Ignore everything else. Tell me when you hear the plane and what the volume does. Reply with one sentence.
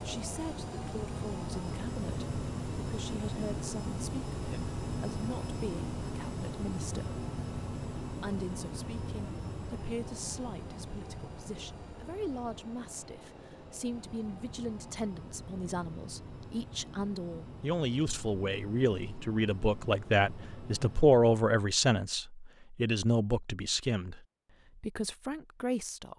The plane can be heard from 0.0 to 21.2 s, getting quieter.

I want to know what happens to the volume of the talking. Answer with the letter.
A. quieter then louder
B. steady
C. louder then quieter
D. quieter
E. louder
E.